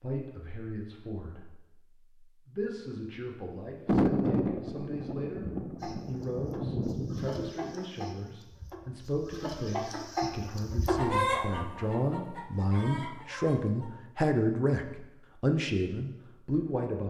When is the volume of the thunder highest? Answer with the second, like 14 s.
4 s.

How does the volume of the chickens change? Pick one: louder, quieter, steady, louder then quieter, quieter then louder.
louder then quieter.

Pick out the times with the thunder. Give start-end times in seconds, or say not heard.
3.9-7.5.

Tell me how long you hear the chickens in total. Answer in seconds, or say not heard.
8 s.